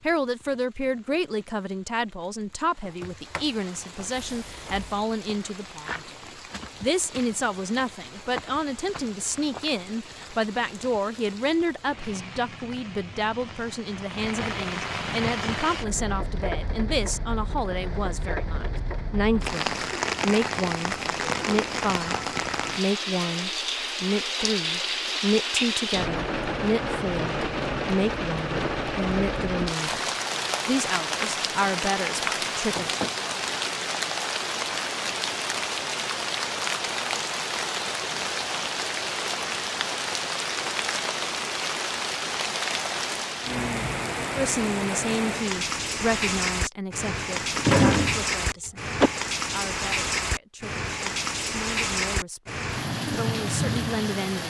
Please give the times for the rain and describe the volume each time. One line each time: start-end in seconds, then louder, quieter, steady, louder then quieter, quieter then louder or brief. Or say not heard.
0.0-54.4 louder.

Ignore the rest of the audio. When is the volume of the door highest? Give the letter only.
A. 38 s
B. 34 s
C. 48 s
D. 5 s
C.